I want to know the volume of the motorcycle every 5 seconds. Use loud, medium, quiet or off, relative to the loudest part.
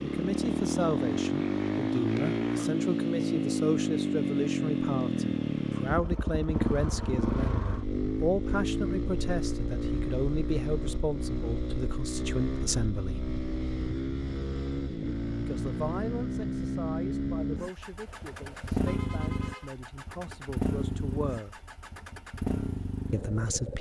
loud, loud, medium, medium, medium.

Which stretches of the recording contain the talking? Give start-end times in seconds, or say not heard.
0.1-13.2, 15.3-21.6, 23.1-23.7.